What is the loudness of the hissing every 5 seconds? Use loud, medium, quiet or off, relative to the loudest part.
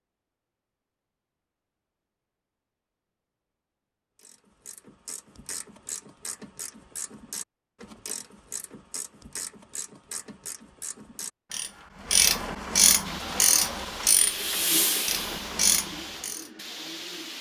off, off, loud, medium.